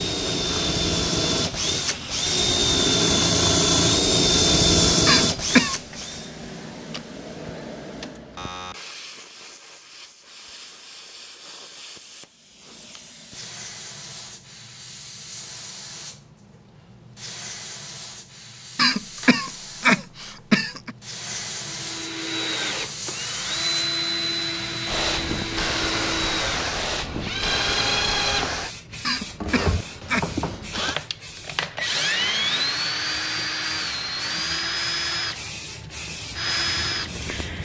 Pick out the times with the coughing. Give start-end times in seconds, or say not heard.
5.0-5.8, 18.8-20.9, 29.1-30.8.